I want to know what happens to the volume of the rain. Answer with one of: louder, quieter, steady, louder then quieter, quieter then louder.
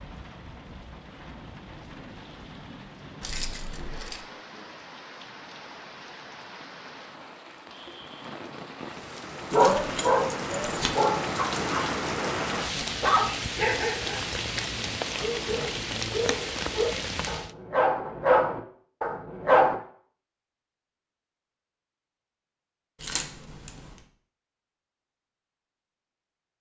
louder.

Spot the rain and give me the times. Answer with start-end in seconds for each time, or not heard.
0.0-17.6.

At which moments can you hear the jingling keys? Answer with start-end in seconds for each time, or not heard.
3.2-4.2, 9.5-10.9, 23.0-24.0.